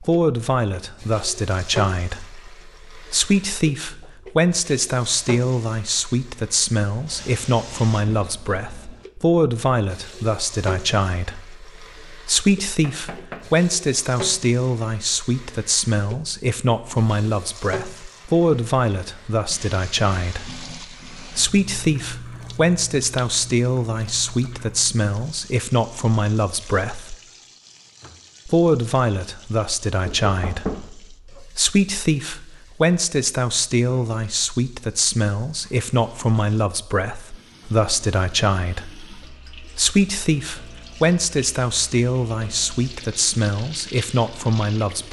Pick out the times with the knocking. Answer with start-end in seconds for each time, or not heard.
12.8-13.6, 30.0-30.9.